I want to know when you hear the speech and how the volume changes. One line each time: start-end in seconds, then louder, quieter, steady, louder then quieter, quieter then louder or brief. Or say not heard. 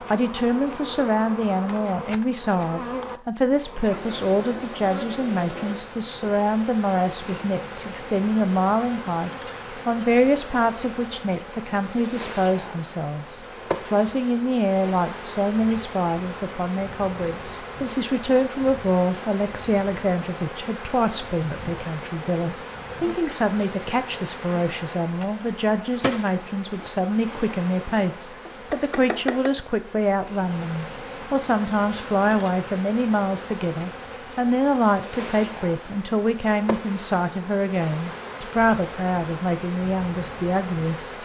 0.1-41.2 steady.